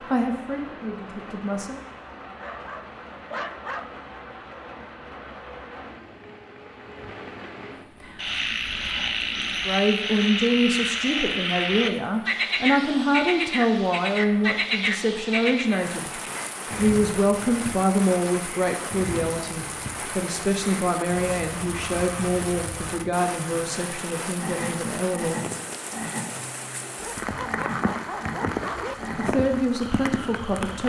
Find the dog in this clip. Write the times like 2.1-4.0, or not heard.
2.2-4.0, 26.9-28.9.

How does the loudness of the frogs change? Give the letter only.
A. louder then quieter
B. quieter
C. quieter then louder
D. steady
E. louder
B.